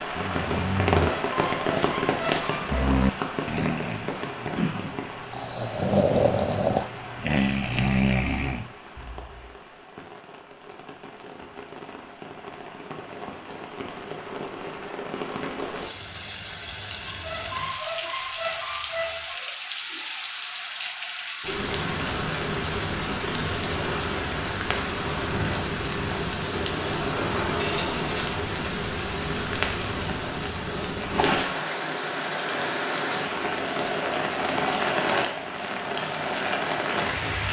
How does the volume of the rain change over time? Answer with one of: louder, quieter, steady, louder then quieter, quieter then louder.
quieter then louder.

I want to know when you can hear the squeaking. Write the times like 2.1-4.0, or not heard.
0.9-2.8, 17.1-19.4, 27.6-28.2.